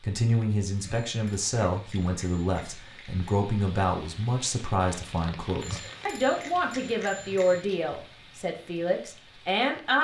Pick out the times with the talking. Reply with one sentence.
The talking can be heard from 0.0 to 9.9 s.